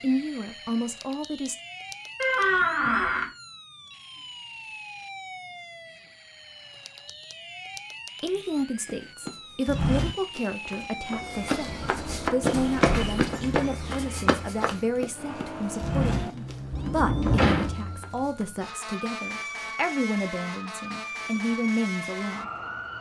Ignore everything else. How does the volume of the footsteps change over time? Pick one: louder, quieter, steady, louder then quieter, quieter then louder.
quieter.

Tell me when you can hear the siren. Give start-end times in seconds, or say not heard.
0.0-22.9.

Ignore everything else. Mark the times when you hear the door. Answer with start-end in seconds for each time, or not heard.
2.2-3.3, 11.7-13.2, 16.7-17.8.